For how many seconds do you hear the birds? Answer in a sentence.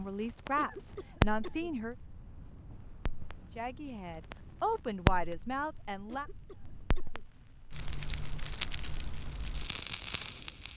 The birds can't be heard in this clip.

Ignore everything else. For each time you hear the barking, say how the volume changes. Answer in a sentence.
You can't hear the barking here.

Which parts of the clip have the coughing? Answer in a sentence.
The coughing can be heard from 0.6 to 1.7 s and from 6.0 to 7.2 s.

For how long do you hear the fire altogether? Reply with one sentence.
The fire can be heard for 11 seconds in total.